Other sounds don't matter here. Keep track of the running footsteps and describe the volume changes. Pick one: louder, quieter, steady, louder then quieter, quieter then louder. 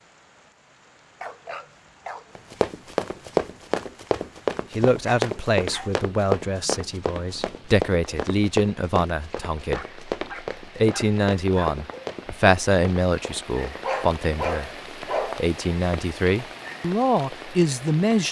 quieter.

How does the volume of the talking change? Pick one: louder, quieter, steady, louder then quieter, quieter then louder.
steady.